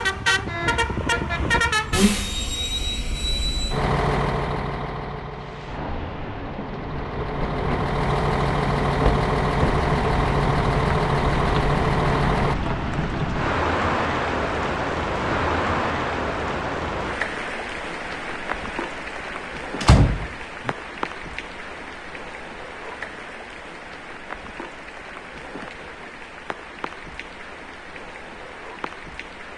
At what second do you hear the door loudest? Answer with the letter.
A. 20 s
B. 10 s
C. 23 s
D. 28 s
A.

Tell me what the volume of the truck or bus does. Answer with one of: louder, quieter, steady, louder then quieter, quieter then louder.
quieter then louder.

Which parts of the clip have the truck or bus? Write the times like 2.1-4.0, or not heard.
0.0-12.6.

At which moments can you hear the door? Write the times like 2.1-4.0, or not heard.
9.0-9.8, 19.8-20.8.